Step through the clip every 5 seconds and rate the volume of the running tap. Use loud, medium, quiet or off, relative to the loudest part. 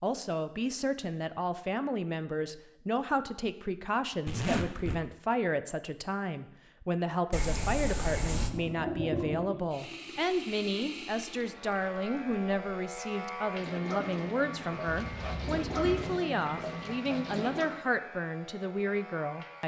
off, loud, medium, loud.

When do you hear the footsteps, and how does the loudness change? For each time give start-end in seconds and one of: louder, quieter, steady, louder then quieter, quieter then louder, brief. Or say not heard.
not heard.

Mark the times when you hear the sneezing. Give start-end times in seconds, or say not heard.
not heard.